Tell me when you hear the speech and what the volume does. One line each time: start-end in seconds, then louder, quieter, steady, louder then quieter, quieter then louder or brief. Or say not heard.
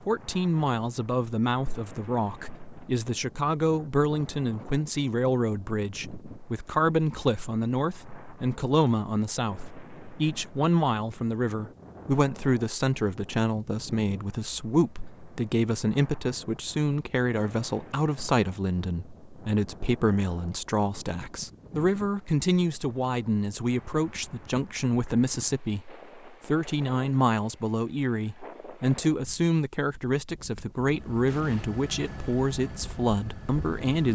0.1-34.1 steady.